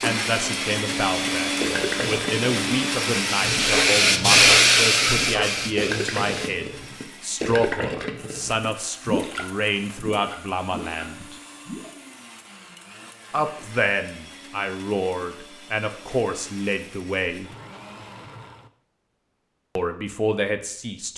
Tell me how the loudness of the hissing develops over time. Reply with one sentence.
The volume of the hissing goes up, then down.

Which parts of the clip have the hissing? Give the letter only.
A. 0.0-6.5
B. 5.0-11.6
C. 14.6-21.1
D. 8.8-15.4
A.